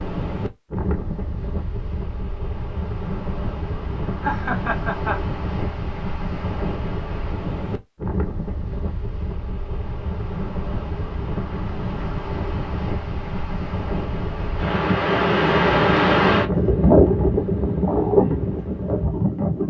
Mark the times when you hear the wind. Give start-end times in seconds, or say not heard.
0.0-19.6.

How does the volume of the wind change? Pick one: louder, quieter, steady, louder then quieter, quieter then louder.
louder.